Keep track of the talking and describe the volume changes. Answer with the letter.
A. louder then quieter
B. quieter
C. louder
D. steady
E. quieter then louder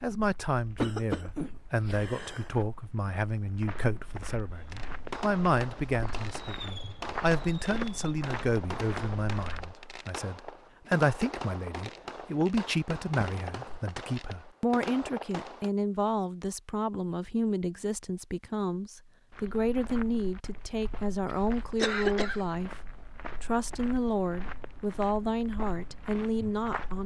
D.